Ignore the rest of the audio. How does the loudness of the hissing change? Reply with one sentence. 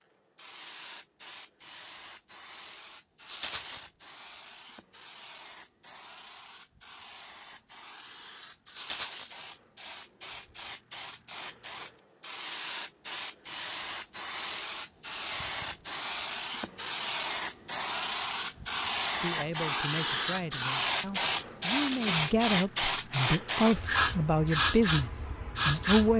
The volume of the hissing goes up.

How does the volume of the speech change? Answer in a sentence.
The loudness of the speech goes up.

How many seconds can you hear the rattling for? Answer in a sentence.
You can hear the rattling for 2 seconds altogether.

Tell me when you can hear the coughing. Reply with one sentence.
The coughing can't be heard in this clip.